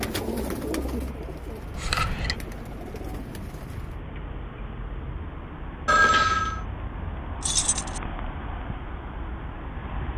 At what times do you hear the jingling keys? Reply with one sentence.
You can hear the jingling keys from 1.8 to 2.4 s and from 7.4 to 8.0 s.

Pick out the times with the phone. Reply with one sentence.
You can hear the phone from 5.8 to 6.6 s.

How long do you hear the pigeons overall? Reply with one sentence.
The pigeons can be heard for 4 seconds in total.